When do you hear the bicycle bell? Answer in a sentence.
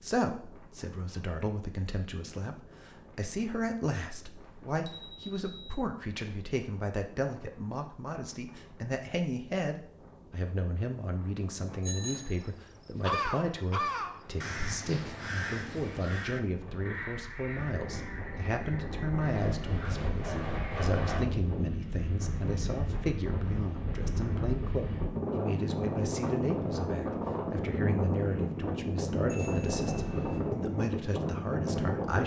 You can hear the bicycle bell from 4.4 to 5.8 s, from 11.8 to 12.4 s and from 29.2 to 30.4 s.